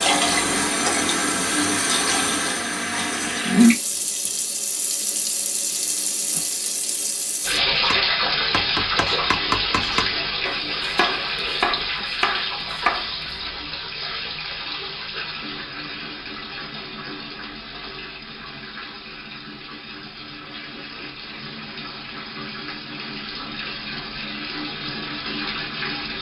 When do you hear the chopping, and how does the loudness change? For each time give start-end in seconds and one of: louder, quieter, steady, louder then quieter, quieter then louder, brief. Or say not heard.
7.7-13.5 steady.